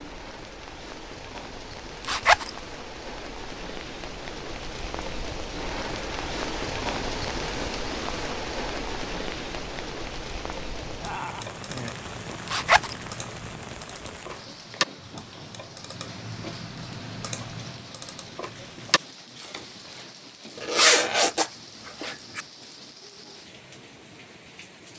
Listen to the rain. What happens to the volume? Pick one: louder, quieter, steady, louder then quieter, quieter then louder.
louder then quieter.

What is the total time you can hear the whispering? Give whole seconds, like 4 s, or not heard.
not heard.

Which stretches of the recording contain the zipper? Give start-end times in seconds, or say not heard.
2.0-2.5, 12.4-12.9, 20.6-22.4.